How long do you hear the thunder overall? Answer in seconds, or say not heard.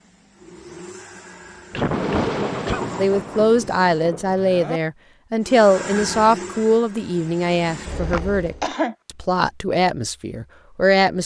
3 s.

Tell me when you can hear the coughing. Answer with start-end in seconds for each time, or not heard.
1.7-2.8, 8.1-8.9.